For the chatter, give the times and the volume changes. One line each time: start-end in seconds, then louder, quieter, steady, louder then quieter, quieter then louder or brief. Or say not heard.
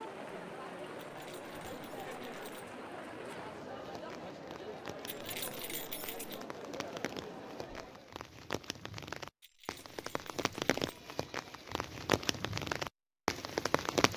0.0-8.2 steady.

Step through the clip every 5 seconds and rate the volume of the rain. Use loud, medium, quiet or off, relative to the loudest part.
quiet, medium, loud.